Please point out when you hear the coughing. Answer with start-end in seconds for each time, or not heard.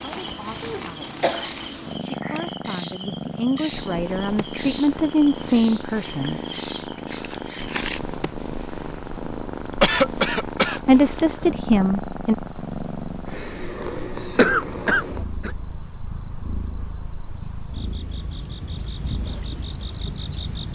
0.6-1.5, 9.8-10.8, 14.3-15.5.